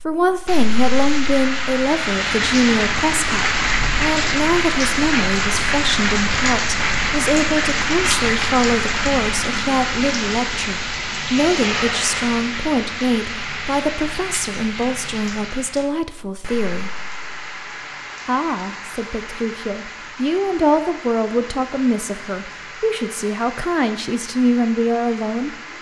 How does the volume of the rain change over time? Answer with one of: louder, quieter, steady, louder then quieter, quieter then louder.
quieter.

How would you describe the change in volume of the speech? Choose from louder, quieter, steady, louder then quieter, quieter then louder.
steady.